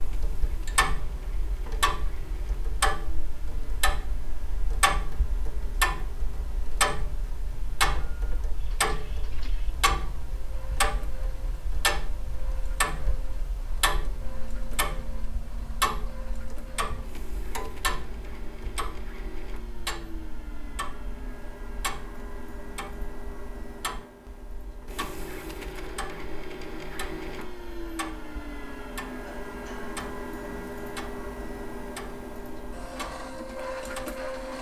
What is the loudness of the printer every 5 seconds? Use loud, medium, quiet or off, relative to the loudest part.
quiet, quiet, quiet, medium, medium, loud, loud.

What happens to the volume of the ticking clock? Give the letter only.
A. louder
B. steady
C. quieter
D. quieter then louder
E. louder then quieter
C.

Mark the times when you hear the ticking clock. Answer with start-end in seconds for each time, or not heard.
0.0-34.2.